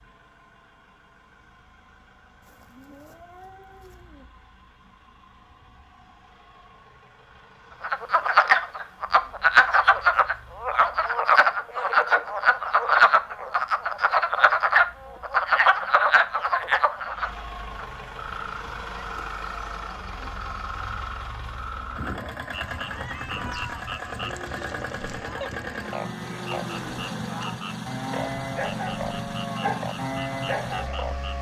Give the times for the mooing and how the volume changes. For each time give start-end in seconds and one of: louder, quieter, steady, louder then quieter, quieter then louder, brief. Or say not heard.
24.2-31.3 louder.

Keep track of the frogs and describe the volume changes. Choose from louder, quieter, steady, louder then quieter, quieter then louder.
quieter.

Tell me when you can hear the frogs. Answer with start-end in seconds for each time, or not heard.
7.8-31.3.